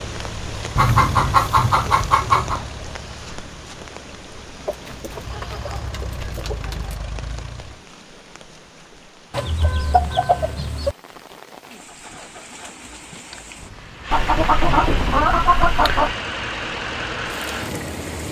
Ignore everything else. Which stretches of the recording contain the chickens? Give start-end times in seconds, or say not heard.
0.8-2.6, 4.7-7.0, 9.3-10.9, 14.1-16.1.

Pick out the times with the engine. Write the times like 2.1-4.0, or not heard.
0.0-7.8, 11.7-18.2.